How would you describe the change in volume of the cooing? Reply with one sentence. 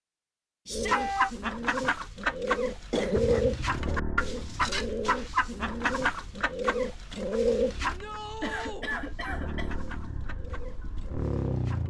The volume of the cooing goes down.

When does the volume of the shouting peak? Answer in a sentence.
The loudest moment of the shouting is at 1 second.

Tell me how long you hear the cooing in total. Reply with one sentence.
The cooing can be heard for 11 seconds in total.